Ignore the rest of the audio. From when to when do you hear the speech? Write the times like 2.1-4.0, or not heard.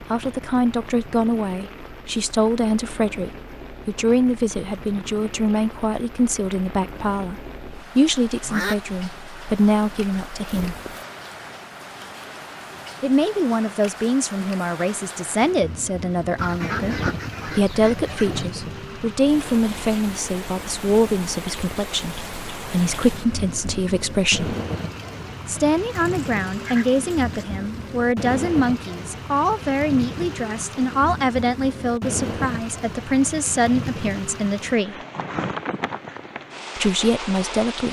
0.0-10.8, 13.0-24.6, 25.4-35.0, 36.8-37.8.